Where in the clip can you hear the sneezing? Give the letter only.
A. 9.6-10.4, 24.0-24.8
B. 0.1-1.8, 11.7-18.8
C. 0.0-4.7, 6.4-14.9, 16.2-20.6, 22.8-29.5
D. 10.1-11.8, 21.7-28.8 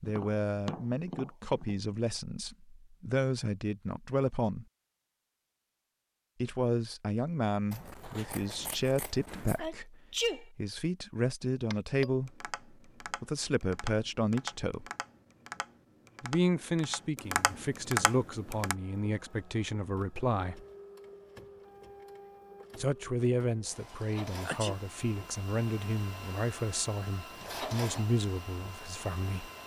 A.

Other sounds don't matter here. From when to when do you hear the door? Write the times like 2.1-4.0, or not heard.
not heard.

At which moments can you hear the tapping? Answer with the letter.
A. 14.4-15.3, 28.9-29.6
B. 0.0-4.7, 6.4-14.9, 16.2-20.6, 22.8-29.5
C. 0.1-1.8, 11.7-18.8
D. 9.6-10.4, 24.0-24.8
C.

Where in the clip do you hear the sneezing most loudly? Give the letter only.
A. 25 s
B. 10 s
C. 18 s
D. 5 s
B.